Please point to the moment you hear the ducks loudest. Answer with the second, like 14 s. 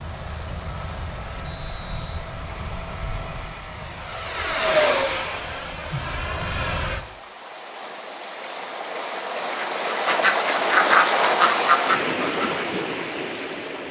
11 s.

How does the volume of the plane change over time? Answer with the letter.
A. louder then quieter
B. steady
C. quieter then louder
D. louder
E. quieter
A.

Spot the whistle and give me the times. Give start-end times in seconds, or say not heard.
1.4-2.2.